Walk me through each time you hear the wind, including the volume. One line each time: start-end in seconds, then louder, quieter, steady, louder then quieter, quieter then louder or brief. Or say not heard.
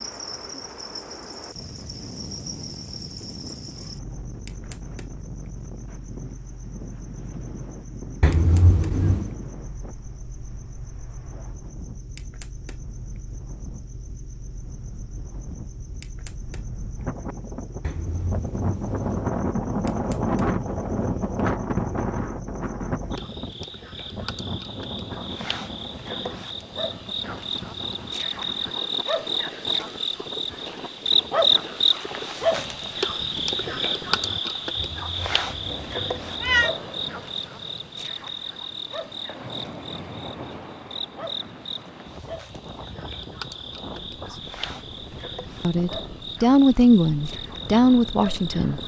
0.0-48.8 louder then quieter.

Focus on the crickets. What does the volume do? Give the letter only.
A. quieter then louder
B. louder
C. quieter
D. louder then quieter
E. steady
D.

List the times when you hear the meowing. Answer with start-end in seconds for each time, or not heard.
8.2-9.3, 17.8-19.3, 34.8-36.7.